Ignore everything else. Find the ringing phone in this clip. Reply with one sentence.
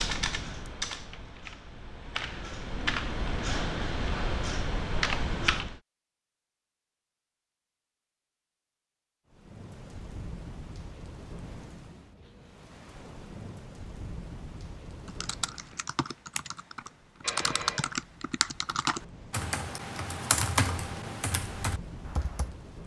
You can hear the ringing phone from 17.2 to 17.9 s.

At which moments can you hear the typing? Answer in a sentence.
The typing can be heard from 0.0 to 5.8 s and from 15.1 to 22.6 s.